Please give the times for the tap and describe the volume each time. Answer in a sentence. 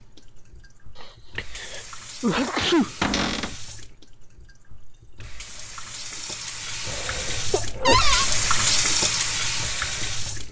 You can hear the tap from 0.0 to 10.4 s, getting louder.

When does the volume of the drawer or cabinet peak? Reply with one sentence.
The loudest moment of the drawer or cabinet is at 8 seconds.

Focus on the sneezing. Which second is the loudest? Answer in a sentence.
The volume of the sneezing peaks at 3 seconds.